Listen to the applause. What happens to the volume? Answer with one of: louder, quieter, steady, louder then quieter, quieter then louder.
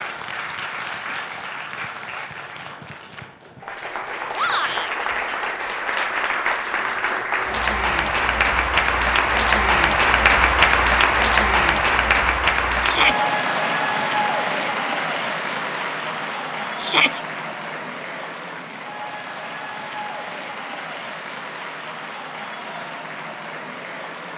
louder then quieter.